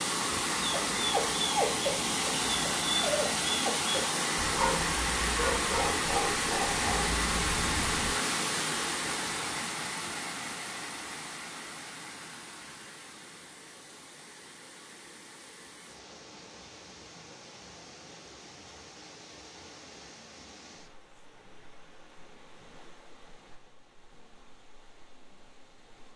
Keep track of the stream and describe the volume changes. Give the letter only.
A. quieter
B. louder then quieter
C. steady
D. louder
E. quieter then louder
A.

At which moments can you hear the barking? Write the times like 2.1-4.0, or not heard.
0.6-8.1.